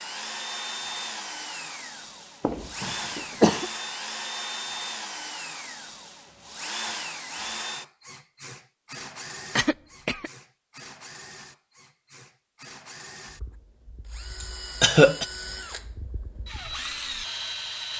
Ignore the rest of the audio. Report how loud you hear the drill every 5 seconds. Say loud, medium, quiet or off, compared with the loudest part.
loud, loud, medium, loud.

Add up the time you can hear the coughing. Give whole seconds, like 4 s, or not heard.
3 s.